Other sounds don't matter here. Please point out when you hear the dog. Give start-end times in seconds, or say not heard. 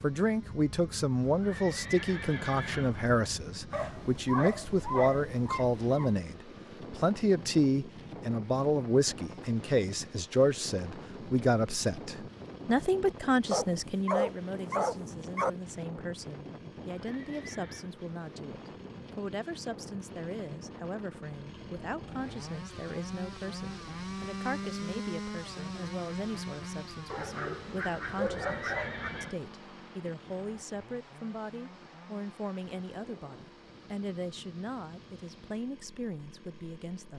3.7-6.2, 13.5-15.5, 27.1-29.1.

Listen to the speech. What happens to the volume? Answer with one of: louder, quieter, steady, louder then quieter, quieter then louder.
quieter.